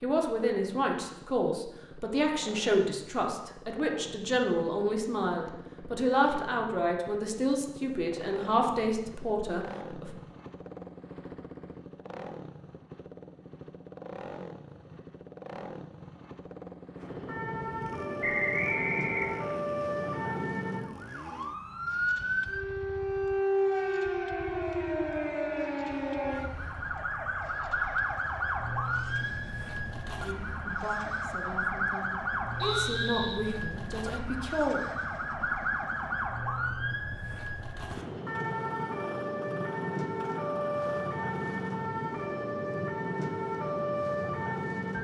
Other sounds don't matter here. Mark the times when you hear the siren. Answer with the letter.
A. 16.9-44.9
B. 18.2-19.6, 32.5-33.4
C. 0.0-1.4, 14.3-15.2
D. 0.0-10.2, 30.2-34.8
A.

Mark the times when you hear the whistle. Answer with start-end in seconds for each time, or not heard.
18.2-19.6, 32.5-33.4.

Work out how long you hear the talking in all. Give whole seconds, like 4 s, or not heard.
15 s.